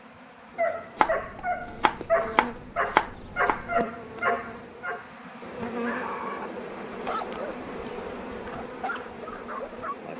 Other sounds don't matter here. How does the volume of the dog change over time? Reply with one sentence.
The loudness of the dog goes down.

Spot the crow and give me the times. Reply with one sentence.
You can't hear the crow here.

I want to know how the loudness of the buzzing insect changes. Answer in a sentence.
The volume of the buzzing insect goes up.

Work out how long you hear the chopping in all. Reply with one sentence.
The chopping can be heard for 3 seconds in total.